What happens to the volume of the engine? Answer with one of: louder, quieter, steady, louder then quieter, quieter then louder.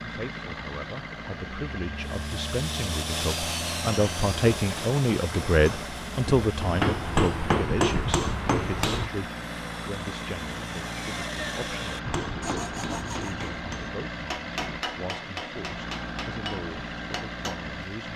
steady.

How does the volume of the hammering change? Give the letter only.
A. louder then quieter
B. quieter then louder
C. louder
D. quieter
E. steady
D.